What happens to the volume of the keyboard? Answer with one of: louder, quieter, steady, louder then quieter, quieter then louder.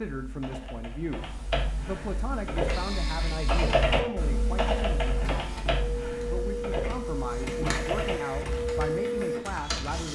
louder then quieter.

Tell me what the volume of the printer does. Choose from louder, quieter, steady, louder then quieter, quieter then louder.
louder.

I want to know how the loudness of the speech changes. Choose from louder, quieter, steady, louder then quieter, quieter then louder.
steady.